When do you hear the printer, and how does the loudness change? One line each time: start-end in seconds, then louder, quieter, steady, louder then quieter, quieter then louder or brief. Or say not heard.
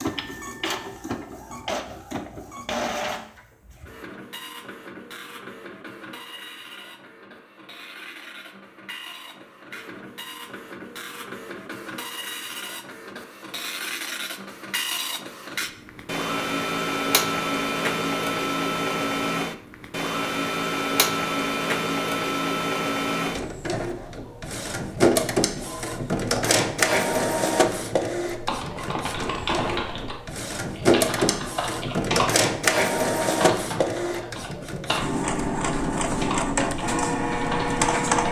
0.0-38.2 louder.